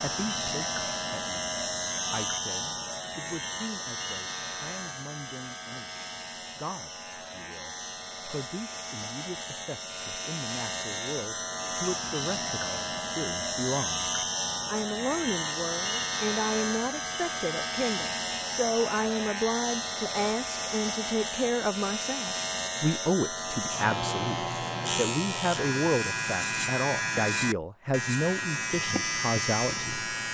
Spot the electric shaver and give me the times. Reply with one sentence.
You can hear the electric shaver from 0.0 to 30.2 s.